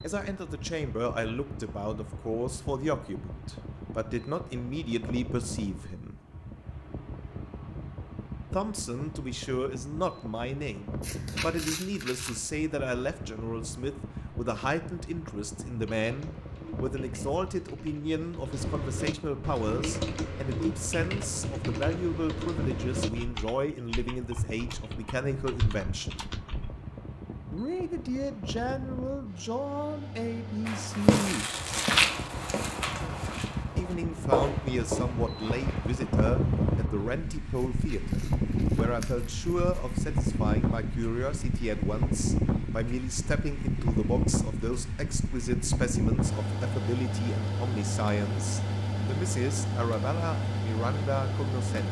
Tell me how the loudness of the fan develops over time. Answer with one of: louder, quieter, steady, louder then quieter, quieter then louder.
louder.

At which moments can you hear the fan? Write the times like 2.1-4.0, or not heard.
0.0-51.8.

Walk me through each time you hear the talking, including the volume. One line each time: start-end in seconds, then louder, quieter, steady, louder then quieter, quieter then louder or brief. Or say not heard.
0.0-6.2 steady
8.5-26.2 steady
27.5-31.5 steady
33.8-51.8 steady.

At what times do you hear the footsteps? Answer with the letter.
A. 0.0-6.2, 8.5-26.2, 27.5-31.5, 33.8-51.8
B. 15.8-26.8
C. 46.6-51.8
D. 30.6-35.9
D.